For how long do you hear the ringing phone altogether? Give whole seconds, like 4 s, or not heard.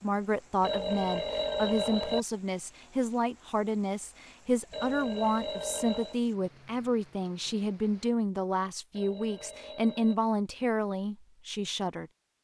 4 s.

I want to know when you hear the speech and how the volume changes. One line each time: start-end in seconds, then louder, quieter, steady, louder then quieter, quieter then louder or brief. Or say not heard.
0.0-12.1 steady.